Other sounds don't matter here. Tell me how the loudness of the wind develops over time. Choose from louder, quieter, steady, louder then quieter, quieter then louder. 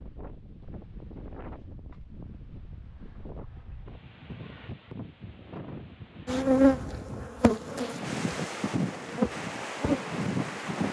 louder.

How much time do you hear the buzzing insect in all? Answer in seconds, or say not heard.
4 s.